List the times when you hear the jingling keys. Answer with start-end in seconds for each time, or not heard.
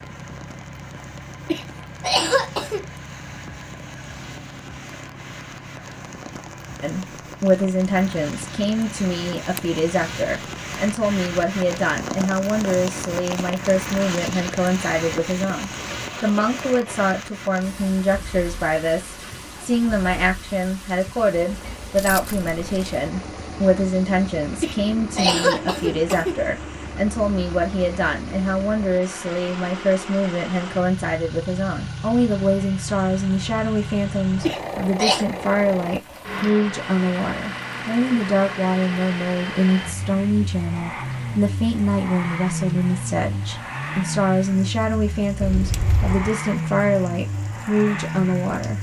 9.1-9.8, 21.9-22.9, 45.4-46.3.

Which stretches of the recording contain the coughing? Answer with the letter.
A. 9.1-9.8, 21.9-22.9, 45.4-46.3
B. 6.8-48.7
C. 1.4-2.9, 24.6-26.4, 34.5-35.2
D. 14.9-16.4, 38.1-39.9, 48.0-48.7
C.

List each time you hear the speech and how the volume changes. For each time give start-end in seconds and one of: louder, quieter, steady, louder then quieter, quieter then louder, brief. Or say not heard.
6.8-48.7 steady.